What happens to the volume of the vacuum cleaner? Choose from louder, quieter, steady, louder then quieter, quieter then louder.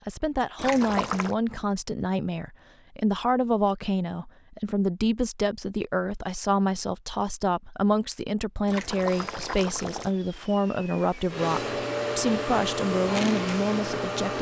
louder.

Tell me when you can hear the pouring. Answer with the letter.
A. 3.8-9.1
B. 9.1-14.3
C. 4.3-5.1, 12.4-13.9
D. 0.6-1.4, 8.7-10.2
D.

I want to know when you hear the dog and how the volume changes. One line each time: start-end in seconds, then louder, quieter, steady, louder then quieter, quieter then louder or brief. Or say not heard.
not heard.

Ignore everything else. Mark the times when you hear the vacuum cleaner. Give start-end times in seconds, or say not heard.
9.1-14.3.